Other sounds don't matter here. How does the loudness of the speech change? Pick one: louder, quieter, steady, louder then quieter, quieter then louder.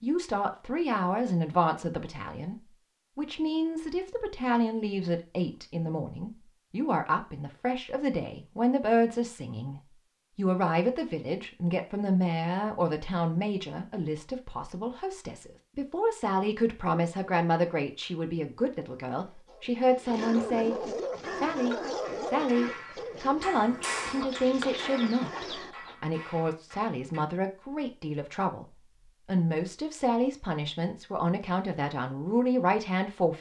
steady.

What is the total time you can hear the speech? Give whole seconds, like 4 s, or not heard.
33 s.